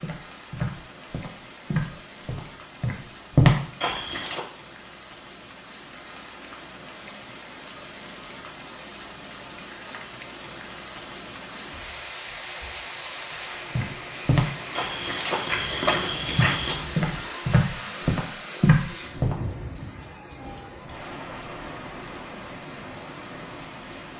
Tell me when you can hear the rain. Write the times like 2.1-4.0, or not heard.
0.0-24.1.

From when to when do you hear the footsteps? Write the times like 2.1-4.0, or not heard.
0.0-4.4, 13.8-19.4.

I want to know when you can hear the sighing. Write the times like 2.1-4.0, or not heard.
not heard.